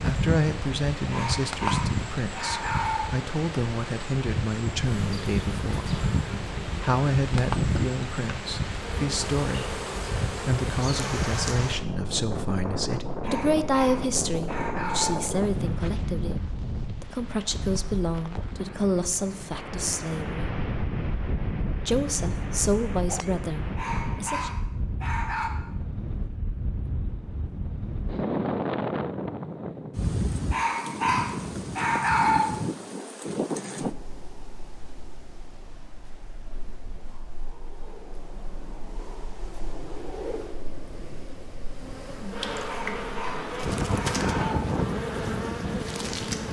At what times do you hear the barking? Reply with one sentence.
The barking can be heard from 1.1 to 3.1 s, from 13.2 to 15.2 s, from 23.8 to 25.5 s, from 30.5 to 32.5 s and from 42.6 to 44.6 s.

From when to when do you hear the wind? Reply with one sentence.
The wind can be heard from 0.0 to 46.4 s.